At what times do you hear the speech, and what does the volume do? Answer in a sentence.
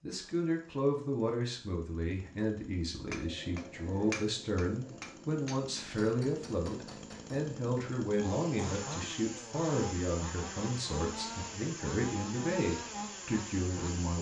The speech can be heard from 0.0 to 14.1 s, at a steady volume.